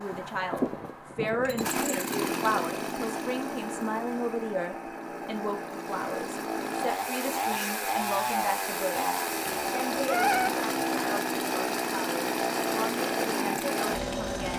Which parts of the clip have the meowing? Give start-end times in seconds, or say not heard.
8.9-10.5.